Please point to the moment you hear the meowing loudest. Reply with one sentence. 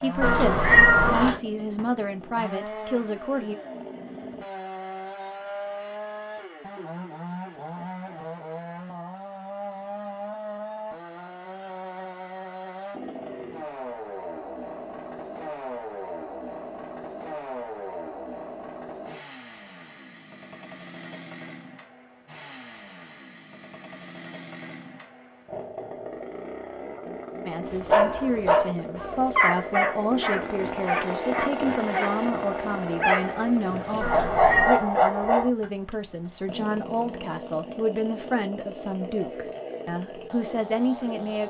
The volume of the meowing peaks at 1 second.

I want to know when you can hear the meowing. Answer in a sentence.
You can hear the meowing from 0.2 to 1.4 s and from 34.0 to 34.9 s.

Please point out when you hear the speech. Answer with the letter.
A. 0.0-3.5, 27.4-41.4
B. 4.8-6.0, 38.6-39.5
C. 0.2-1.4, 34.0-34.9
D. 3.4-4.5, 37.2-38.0
A.